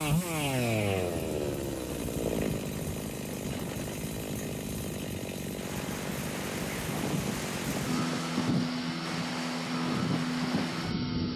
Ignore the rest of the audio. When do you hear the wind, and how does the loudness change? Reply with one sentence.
The wind can be heard from 0.0 to 11.3 s, getting louder.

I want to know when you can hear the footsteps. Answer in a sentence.
You can't hear the footsteps here.